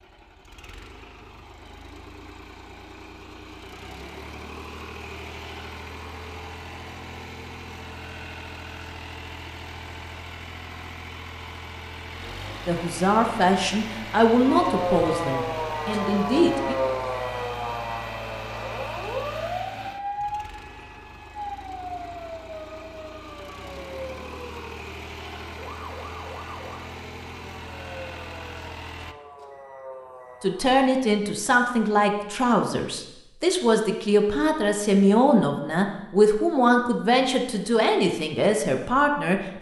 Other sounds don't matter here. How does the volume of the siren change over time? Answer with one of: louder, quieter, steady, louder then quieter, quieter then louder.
quieter.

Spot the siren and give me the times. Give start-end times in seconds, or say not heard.
14.4-30.8.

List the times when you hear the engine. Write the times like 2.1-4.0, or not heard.
0.0-29.1.